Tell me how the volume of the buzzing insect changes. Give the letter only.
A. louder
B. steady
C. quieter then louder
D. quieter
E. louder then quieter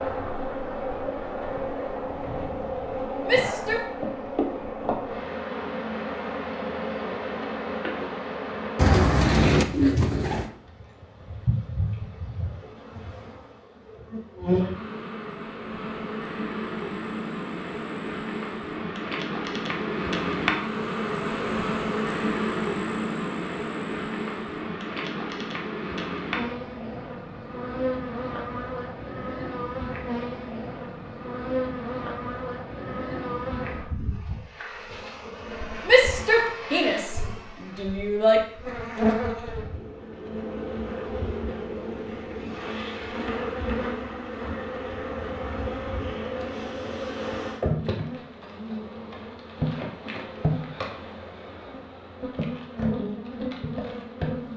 B.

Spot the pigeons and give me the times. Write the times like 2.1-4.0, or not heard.
8.8-10.5.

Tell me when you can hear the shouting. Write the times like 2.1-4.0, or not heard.
3.2-3.9, 35.9-38.4.